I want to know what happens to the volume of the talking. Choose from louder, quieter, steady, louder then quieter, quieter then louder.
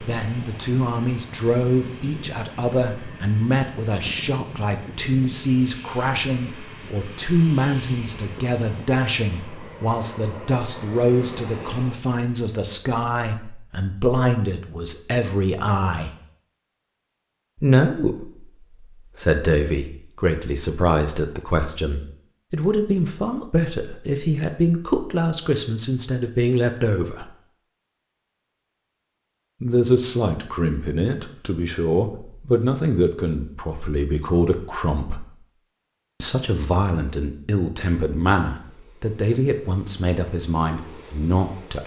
steady.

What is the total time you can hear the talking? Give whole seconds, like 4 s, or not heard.
37 s.